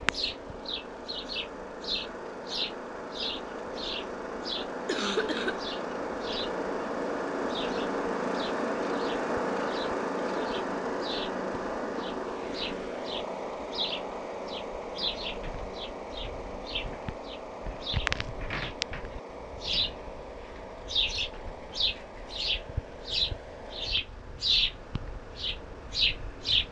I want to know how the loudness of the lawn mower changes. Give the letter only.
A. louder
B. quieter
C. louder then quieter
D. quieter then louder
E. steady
C.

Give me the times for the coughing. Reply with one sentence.
The coughing can be heard from 4.8 to 5.7 s.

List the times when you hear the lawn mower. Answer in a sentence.
The lawn mower can be heard from 0.0 to 26.6 s.